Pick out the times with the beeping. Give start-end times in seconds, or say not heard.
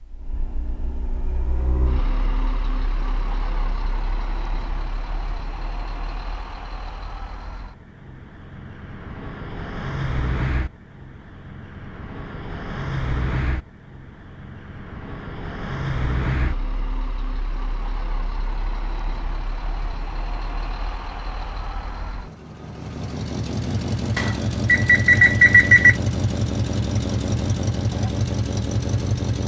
24.1-25.9.